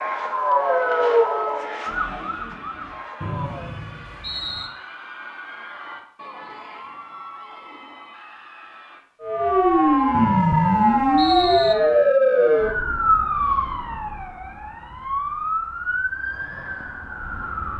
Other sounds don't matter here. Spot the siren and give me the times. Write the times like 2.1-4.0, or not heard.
0.0-3.8, 9.2-17.7.